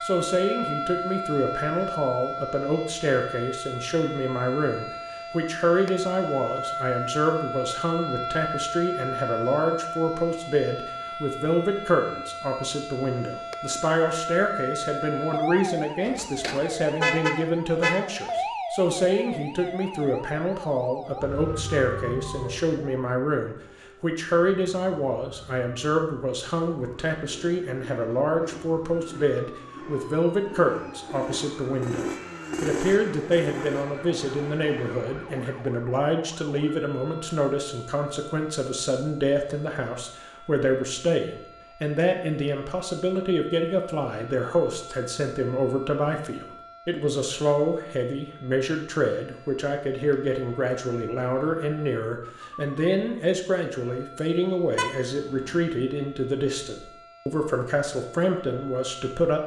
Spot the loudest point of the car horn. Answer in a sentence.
The volume of the car horn peaks at 17 seconds.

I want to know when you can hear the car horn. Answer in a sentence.
You can hear the car horn from 16.1 to 18.0 s and from 54.8 to 55.5 s.